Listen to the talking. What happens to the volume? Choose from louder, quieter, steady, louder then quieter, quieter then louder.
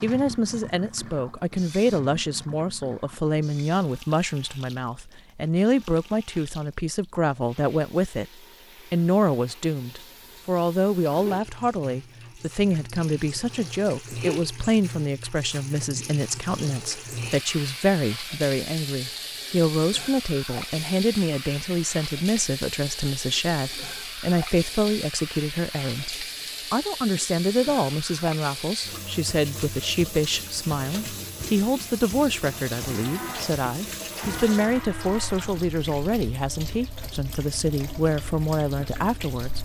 steady.